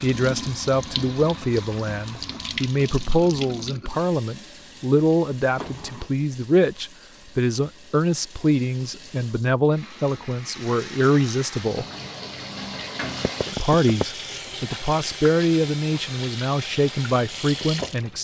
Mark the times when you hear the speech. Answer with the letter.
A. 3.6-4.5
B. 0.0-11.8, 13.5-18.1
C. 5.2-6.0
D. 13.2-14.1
B.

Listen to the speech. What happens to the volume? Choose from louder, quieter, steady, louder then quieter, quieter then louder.
steady.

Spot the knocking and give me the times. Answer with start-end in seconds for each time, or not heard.
13.2-14.1.